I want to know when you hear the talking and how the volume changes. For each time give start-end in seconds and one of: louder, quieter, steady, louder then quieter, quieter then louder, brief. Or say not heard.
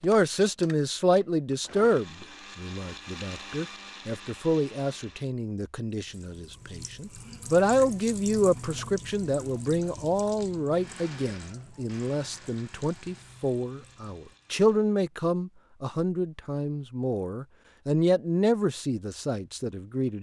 0.0-20.1 steady.